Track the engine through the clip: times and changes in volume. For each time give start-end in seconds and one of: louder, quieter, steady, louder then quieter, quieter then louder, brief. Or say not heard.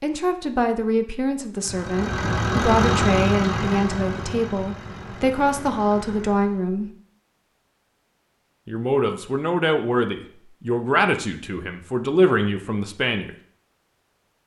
1.6-6.7 quieter.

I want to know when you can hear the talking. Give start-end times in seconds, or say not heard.
0.0-6.9, 8.7-13.3.